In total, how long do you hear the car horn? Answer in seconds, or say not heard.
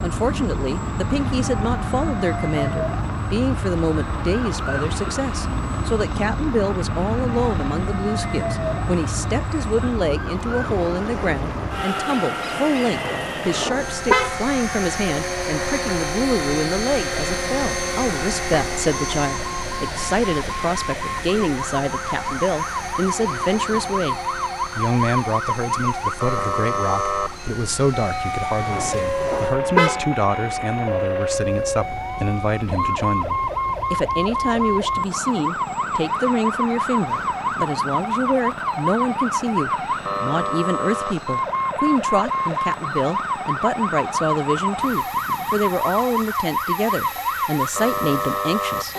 3 s.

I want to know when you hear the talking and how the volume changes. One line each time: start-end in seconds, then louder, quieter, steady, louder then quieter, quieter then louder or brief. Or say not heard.
0.0-48.9 steady.